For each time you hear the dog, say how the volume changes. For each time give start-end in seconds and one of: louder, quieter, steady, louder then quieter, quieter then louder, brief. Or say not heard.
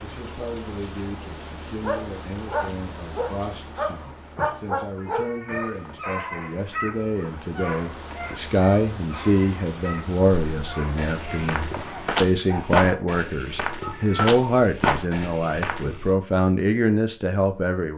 1.8-13.1 quieter.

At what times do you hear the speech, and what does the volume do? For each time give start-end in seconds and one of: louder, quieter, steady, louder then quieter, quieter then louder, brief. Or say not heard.
0.0-17.9 louder.